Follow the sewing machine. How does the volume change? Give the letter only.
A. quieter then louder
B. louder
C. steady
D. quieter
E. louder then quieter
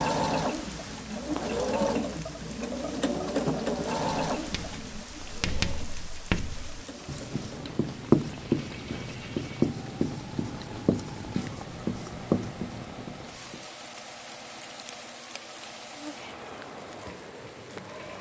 D.